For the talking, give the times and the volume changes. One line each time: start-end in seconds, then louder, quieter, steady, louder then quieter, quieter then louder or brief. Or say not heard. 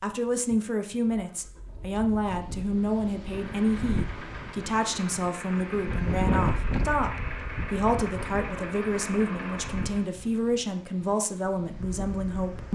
0.0-12.7 steady.